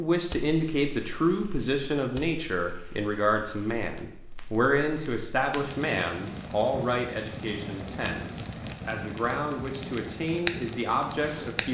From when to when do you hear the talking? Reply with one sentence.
The talking can be heard from 0.0 to 11.6 s.